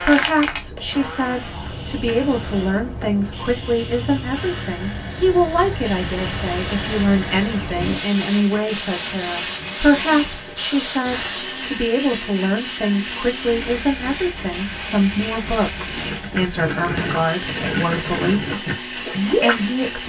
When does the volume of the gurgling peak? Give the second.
19 s.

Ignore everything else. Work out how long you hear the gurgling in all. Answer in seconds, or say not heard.
4 s.